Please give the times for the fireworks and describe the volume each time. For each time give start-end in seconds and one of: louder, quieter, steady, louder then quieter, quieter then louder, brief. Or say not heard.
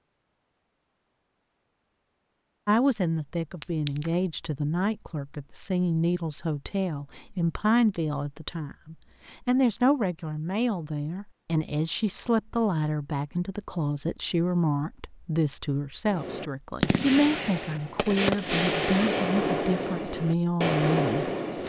16.1-21.6 steady.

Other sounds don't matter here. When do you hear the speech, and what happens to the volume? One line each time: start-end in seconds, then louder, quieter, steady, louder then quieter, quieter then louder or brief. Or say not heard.
2.6-21.6 steady.